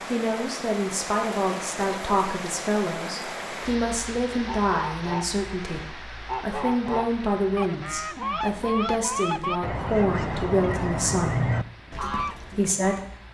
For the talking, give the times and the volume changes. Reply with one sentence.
You can hear the talking from 0.1 to 11.5 s, at a steady volume; and briefly from 12.1 to 13.2 s.